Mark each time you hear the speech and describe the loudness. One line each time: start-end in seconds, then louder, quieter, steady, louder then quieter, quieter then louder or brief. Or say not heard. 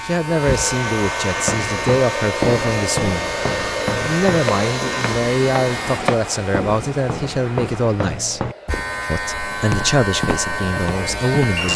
0.0-11.7 steady.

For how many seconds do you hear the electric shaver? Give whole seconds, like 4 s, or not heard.
9 s.